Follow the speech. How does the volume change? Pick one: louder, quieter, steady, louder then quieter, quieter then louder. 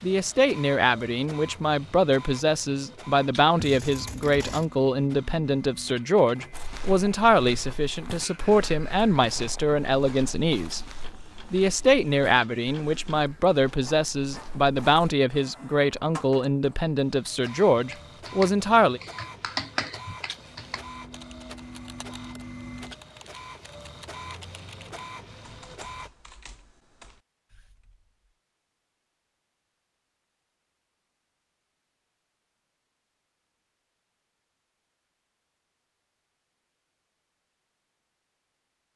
steady.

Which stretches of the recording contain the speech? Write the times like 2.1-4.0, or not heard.
0.0-10.8, 11.5-19.0.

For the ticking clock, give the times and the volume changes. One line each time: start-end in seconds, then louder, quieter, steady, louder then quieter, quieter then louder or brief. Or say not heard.
not heard.